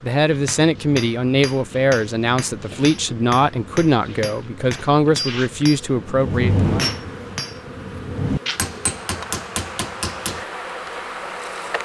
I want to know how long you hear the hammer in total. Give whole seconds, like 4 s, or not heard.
10 s.